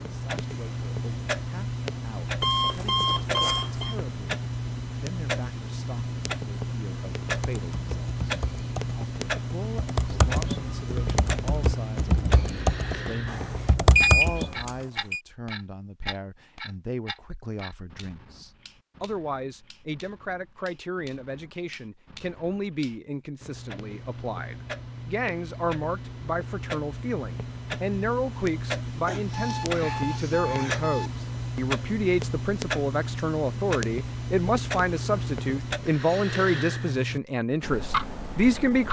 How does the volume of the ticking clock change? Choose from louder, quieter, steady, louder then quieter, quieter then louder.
quieter then louder.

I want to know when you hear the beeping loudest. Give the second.
14 s.